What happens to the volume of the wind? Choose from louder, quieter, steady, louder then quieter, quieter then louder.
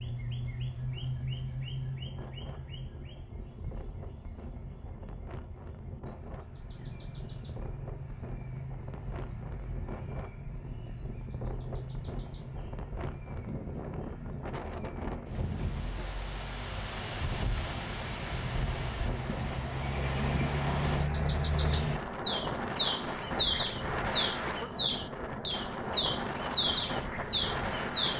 louder.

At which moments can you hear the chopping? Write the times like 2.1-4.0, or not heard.
not heard.